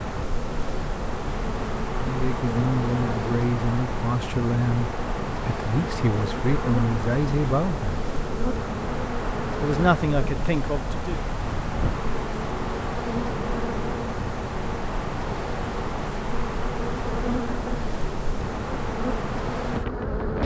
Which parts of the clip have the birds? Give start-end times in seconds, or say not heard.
not heard.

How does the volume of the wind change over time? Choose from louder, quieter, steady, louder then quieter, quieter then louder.
steady.